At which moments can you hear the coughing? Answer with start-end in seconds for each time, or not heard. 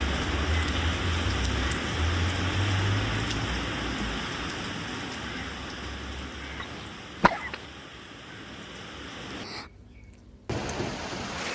6.6-7.6.